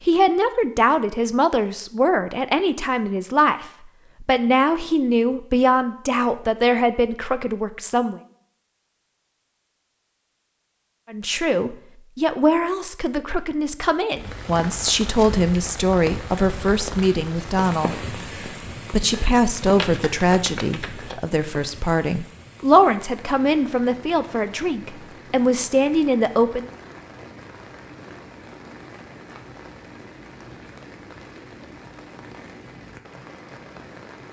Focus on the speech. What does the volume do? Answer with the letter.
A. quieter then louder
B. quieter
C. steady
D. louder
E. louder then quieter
C.